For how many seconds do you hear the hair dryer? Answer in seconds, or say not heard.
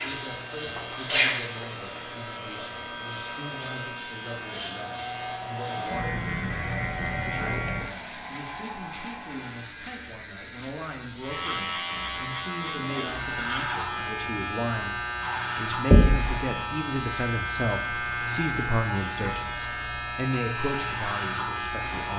10 s.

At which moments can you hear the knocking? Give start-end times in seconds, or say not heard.
15.9-16.4.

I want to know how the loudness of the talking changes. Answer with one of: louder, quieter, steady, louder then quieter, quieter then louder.
louder.